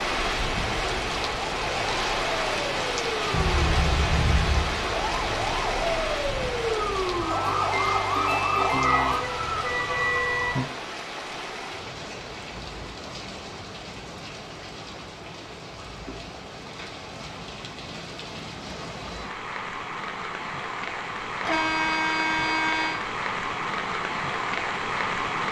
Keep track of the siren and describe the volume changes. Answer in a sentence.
The loudness of the siren goes up.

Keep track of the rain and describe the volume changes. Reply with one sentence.
The volume of the rain goes down, then up.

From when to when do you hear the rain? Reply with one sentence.
You can hear the rain from 0.0 to 25.4 s.